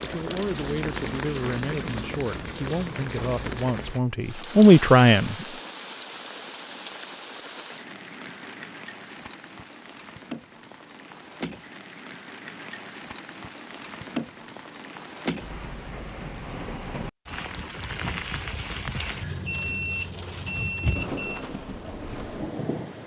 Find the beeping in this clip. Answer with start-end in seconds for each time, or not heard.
19.3-21.4.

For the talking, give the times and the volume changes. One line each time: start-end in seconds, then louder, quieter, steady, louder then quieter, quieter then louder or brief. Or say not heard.
0.0-5.5 louder.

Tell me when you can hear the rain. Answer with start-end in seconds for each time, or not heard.
0.0-23.0.